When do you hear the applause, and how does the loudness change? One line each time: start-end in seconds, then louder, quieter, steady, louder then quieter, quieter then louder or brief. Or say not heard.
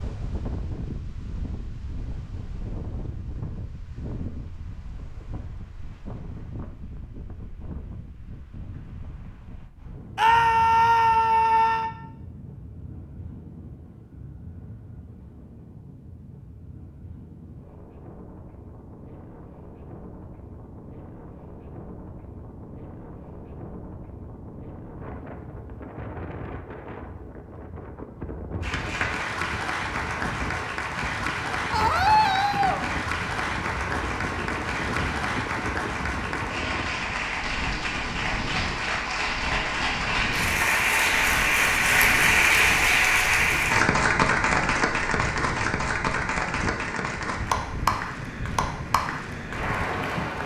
28.6-50.4 louder then quieter.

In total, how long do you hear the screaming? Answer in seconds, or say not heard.
3 s.